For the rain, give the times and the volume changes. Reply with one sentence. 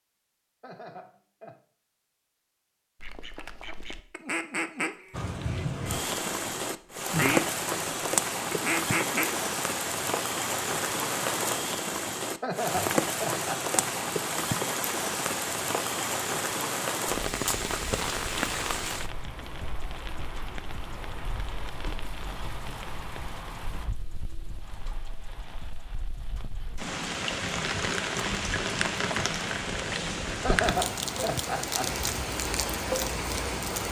You can hear the rain from 5.1 to 33.8 s, getting quieter then louder.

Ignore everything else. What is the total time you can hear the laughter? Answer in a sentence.
You can hear the laughter for 4 seconds altogether.